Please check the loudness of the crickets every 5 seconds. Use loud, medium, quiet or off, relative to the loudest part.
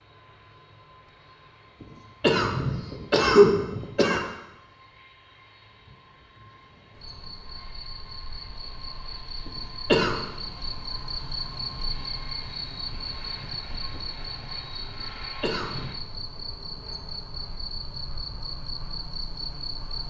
off, medium, loud, loud.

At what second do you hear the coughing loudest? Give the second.
3 s.